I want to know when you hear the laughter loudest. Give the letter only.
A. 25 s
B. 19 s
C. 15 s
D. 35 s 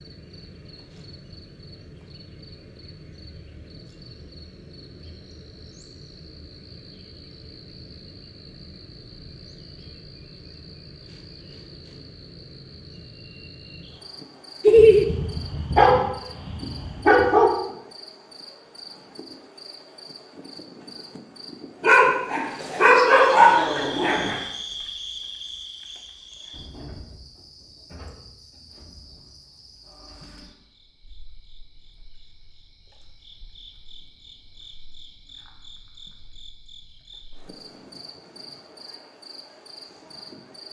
C.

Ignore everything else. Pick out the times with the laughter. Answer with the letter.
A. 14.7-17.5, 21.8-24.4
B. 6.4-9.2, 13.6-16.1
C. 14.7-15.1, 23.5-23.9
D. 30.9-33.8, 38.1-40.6
C.